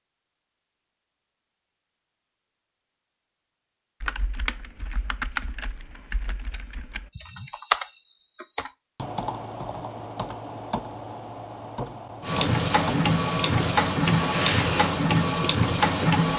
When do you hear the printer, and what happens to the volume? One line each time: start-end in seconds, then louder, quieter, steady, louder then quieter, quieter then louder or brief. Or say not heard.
12.2-16.3 steady.